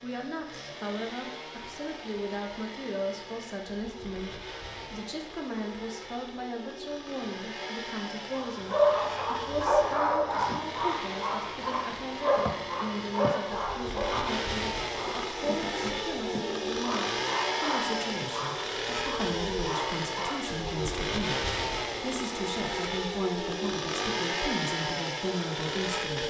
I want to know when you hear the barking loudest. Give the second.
9 s.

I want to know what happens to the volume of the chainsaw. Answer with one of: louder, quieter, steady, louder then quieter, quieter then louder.
louder.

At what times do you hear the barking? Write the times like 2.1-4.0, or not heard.
8.3-20.6.